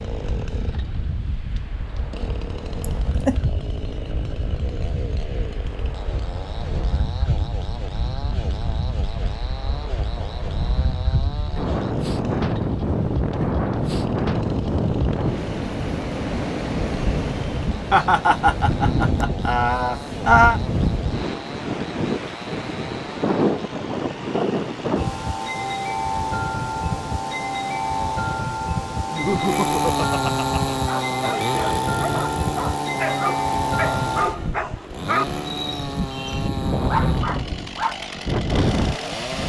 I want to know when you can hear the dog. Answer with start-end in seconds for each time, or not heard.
30.9-38.0.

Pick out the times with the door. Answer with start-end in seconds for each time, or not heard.
not heard.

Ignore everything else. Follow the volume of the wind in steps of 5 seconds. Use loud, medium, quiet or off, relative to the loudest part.
medium, medium, loud, loud, loud, loud, loud, loud.